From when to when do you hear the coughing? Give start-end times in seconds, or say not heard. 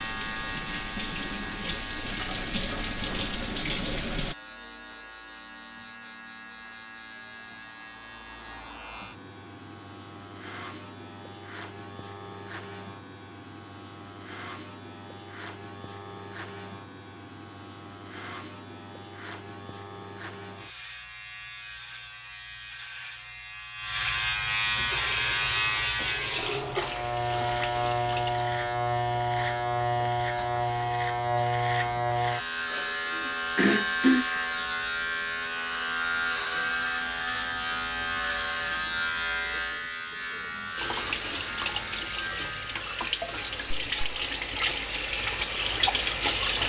33.5-34.2.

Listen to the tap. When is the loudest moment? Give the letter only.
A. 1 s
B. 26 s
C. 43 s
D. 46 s
D.